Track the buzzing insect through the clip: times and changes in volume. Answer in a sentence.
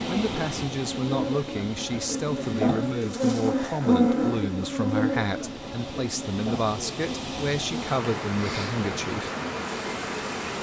The buzzing insect can be heard from 0.0 to 10.5 s, getting louder then quieter.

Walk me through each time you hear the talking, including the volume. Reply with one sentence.
The talking can be heard from 0.1 to 9.3 s, at a steady volume.